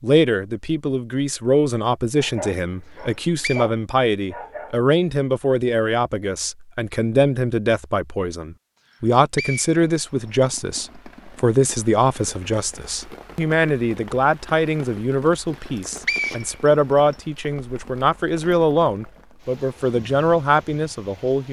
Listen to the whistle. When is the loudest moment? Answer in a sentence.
The loudest moment of the whistle is at 16 seconds.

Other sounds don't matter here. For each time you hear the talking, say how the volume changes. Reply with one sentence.
The talking can be heard from 0.0 to 21.4 s, at a steady volume.